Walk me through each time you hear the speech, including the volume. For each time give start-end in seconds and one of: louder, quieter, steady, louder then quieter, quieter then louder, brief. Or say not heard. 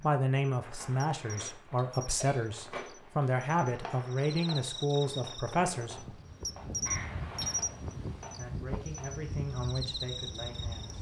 0.0-6.2 steady
8.3-10.9 brief.